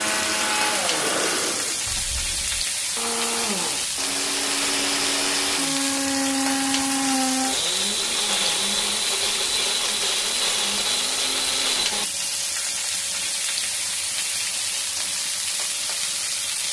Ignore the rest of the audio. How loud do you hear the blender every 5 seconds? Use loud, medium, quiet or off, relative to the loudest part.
loud, loud, loud, off.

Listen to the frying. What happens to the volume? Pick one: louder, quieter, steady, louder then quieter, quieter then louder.
steady.